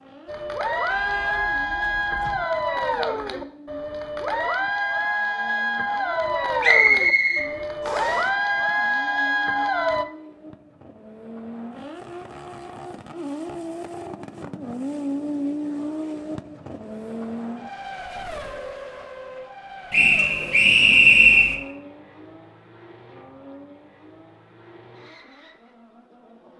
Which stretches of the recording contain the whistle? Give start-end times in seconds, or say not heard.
6.6-8.2, 19.9-21.6.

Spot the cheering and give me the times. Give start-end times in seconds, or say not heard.
0.2-10.1.